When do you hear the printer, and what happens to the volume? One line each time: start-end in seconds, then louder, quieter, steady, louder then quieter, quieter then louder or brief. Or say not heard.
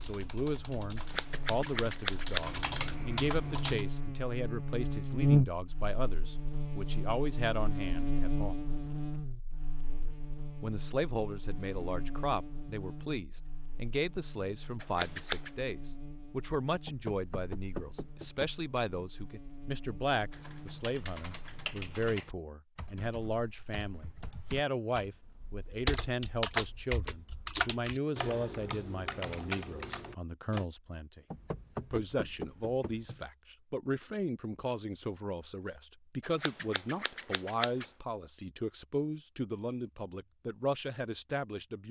not heard.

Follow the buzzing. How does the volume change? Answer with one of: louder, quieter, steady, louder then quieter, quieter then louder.
louder then quieter.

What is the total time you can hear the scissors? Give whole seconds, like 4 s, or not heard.
4 s.